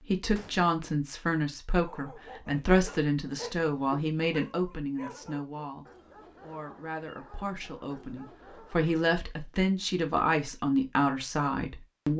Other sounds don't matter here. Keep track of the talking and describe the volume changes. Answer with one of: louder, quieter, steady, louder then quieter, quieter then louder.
quieter then louder.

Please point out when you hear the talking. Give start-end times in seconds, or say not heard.
0.1-12.1.